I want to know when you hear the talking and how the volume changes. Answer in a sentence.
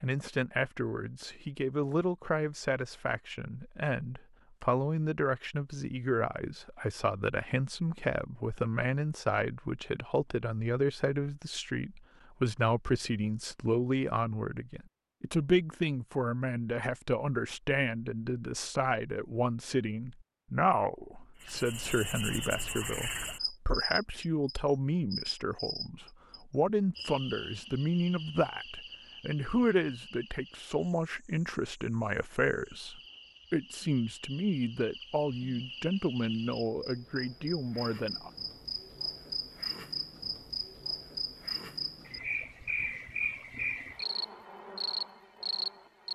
You can hear the talking from 0.0 to 38.3 s, at a steady volume.